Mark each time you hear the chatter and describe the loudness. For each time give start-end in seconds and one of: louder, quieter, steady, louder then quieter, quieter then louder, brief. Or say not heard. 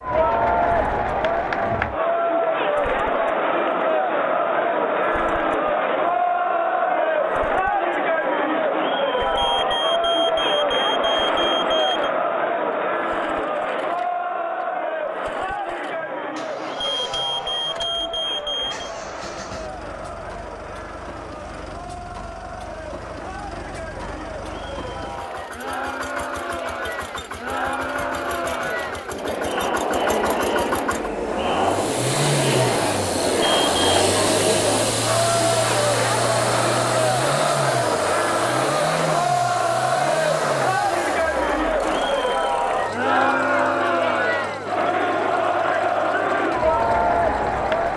0.0-47.9 quieter then louder.